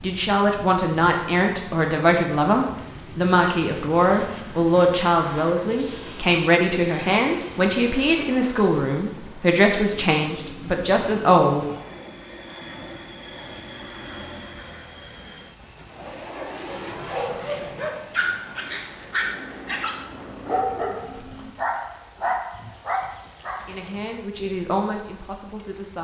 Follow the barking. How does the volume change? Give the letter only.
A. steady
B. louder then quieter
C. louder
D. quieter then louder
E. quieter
C.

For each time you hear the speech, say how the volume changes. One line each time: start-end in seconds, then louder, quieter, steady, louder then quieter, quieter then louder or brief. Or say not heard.
0.0-11.7 steady
23.6-26.0 brief.